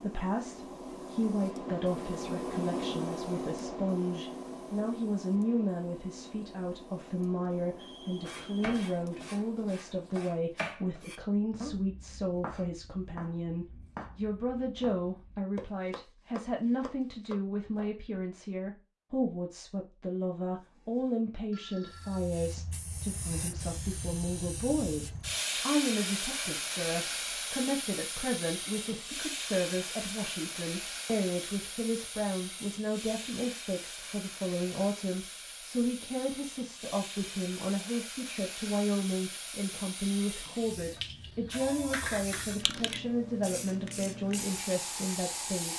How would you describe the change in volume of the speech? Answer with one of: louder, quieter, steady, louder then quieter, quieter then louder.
steady.